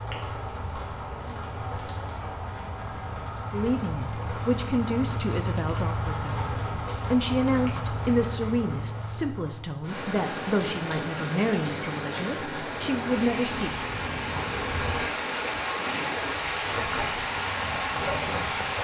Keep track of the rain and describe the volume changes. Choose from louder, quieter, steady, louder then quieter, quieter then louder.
louder.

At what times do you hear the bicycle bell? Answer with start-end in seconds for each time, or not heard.
not heard.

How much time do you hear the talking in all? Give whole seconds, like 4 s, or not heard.
10 s.